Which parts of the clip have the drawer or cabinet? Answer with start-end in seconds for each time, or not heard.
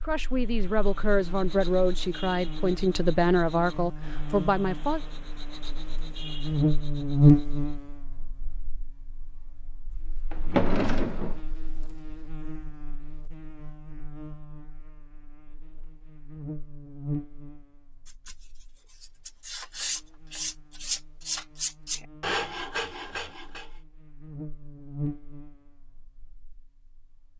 10.3-11.4.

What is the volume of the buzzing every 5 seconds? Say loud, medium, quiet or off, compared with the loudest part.
quiet, loud, quiet, quiet, quiet, quiet.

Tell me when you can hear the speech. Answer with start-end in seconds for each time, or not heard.
0.0-5.0.